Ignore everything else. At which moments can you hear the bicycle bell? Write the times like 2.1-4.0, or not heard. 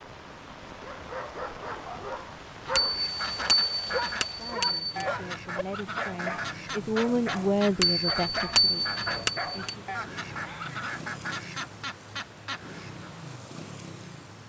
2.8-5.0, 7.8-9.8.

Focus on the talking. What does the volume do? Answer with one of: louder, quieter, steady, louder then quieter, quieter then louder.
louder then quieter.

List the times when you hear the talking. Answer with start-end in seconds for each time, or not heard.
4.3-9.8.